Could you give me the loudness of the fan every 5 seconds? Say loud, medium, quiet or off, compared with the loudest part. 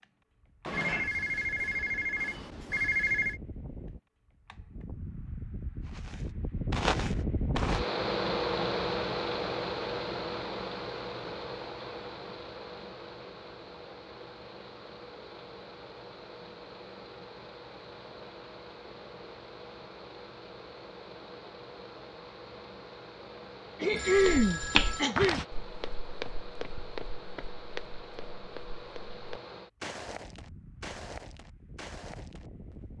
quiet, loud, medium, quiet, quiet, quiet, quiet.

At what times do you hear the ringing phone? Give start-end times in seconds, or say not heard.
0.7-3.4, 23.9-25.1.